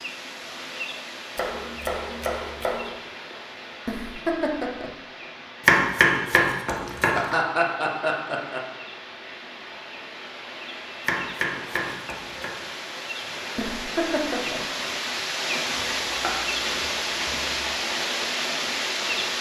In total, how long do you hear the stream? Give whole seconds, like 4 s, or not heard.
19 s.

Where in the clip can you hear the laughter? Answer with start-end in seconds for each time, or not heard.
3.9-4.9, 6.8-8.7, 13.6-14.6.